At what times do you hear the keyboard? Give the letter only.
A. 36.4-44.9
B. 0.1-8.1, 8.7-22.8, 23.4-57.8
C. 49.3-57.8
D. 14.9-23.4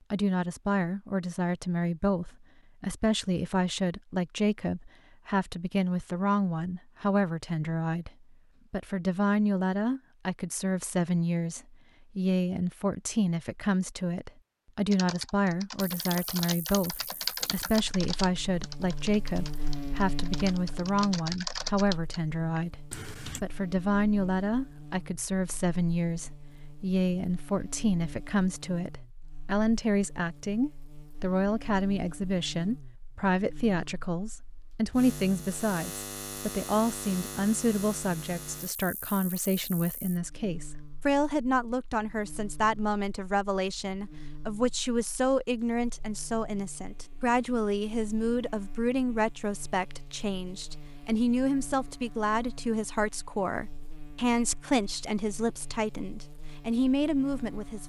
D.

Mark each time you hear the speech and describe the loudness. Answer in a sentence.
The speech can be heard from 0.1 to 8.1 s, at a steady volume; from 8.7 to 22.8 s, at a steady volume; and from 23.4 to 57.8 s, at a steady volume.